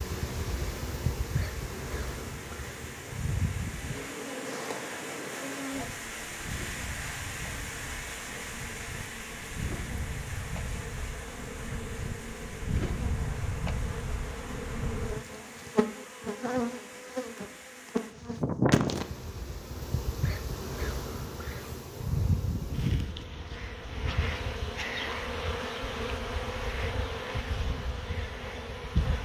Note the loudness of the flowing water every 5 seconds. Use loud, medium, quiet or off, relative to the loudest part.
medium, loud, medium, medium, off, off.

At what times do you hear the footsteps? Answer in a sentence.
The footsteps can't be heard in this clip.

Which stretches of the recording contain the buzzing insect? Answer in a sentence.
The buzzing insect can be heard from 0.0 to 29.2 s.